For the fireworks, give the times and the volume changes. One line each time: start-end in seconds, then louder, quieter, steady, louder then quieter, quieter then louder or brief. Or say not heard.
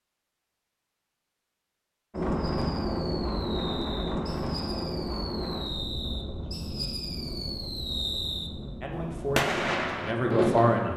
2.2-10.9 louder.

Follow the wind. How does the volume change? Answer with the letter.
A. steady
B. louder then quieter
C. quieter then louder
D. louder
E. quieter
E.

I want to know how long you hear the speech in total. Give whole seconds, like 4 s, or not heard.
2 s.